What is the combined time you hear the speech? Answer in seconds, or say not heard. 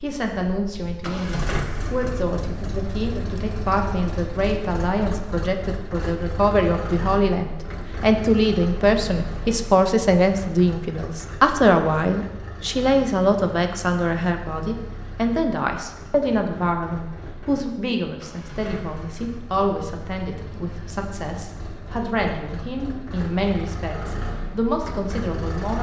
26 s.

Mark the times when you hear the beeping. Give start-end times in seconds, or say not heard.
not heard.